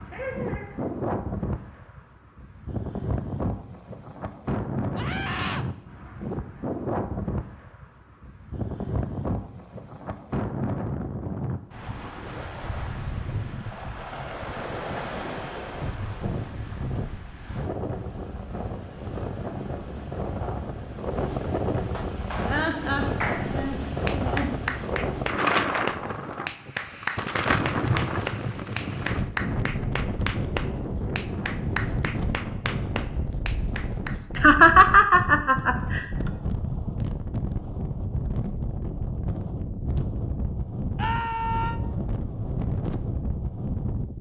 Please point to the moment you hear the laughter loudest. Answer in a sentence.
The volume of the laughter peaks at 35 seconds.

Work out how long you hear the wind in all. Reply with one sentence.
You can hear the wind for 44 seconds altogether.